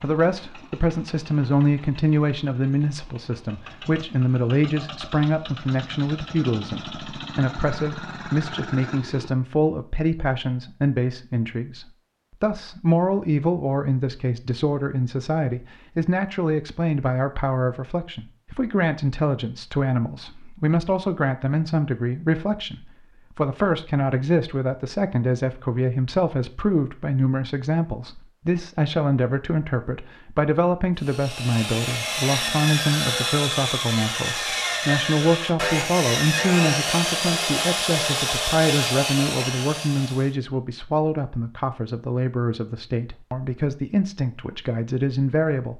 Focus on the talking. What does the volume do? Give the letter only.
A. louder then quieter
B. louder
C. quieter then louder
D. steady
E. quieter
D.